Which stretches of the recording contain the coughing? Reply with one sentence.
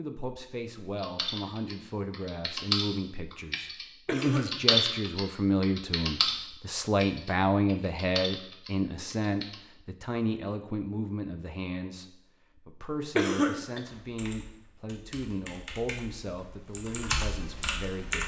The coughing can be heard from 4.0 to 4.8 s and from 13.2 to 13.8 s.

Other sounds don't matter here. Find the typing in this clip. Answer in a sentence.
The typing can be heard from 0.9 to 9.6 s and from 13.8 to 18.2 s.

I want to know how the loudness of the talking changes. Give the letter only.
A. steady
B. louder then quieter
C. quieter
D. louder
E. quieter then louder
B.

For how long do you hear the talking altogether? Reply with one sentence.
You can hear the talking for 18 seconds altogether.